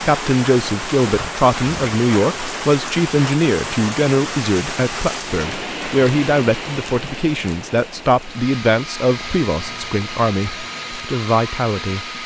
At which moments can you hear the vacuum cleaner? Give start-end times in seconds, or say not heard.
8.2-12.2.